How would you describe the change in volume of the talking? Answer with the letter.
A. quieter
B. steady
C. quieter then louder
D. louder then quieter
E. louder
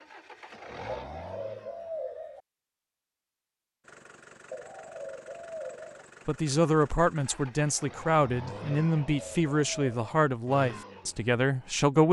B.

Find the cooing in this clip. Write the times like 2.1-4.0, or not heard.
0.8-2.4, 4.5-6.0, 8.8-10.0.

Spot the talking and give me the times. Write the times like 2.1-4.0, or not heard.
6.2-12.0.